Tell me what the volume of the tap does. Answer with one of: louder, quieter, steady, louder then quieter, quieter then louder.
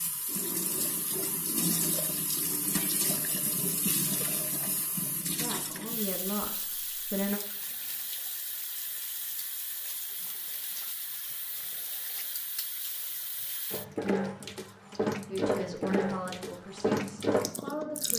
quieter then louder.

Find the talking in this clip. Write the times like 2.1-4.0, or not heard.
5.3-7.4, 15.3-18.1.